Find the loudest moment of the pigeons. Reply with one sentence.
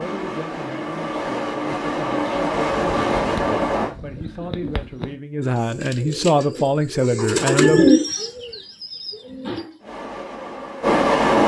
The loudest moment of the pigeons is at 8 seconds.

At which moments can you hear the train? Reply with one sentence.
You can hear the train from 0.0 to 3.9 s and from 9.8 to 11.4 s.